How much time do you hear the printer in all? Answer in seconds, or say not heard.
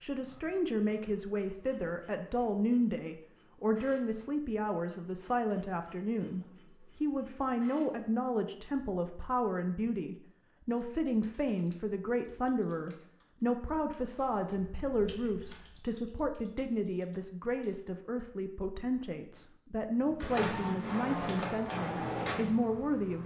11 s.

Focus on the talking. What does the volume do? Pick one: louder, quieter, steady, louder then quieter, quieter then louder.
steady.